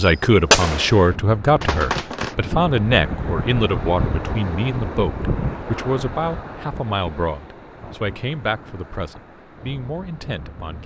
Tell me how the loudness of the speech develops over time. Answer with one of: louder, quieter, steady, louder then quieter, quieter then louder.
quieter.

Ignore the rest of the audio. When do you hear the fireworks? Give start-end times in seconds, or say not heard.
0.0-2.4.